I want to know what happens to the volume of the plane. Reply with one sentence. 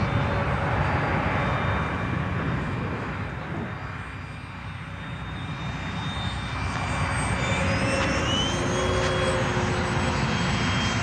The loudness of the plane goes down, then up.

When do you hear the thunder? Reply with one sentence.
The thunder can be heard from 0.9 to 3.7 s.